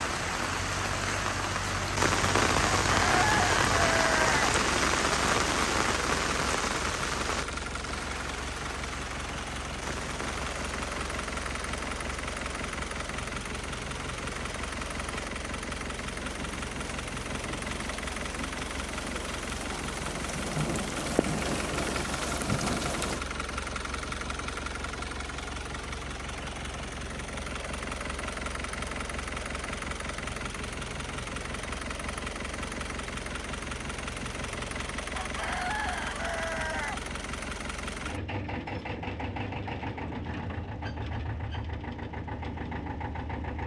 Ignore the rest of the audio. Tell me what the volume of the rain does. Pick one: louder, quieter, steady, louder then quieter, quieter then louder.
quieter then louder.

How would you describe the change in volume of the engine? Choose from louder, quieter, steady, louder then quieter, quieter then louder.
steady.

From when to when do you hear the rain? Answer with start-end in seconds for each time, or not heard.
0.0-23.2.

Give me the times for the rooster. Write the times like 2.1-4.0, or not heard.
2.8-4.5, 35.1-37.0.